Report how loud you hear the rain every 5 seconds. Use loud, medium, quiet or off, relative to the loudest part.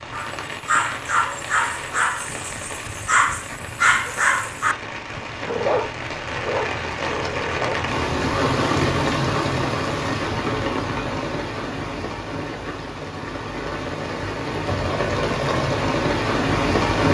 quiet, loud, medium, loud.